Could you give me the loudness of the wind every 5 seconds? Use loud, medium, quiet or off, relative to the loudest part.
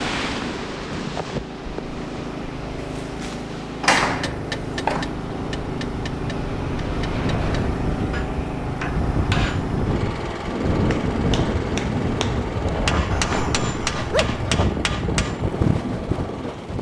medium, loud, loud, loud.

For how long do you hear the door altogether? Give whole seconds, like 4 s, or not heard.
2 s.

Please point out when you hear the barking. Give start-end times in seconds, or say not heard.
13.1-14.7.